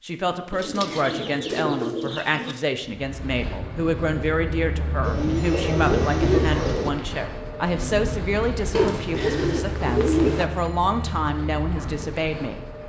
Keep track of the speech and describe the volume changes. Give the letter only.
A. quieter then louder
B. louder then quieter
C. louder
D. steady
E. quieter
D.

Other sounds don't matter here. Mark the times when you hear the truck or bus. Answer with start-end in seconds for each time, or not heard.
2.8-12.8.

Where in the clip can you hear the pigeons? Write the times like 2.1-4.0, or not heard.
0.5-2.5, 5.0-6.9, 8.7-10.4.